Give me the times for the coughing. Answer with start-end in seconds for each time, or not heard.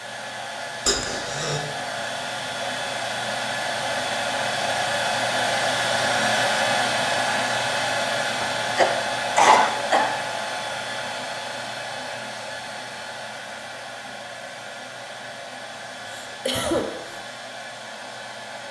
0.8-1.6, 8.4-10.1, 16.1-17.2.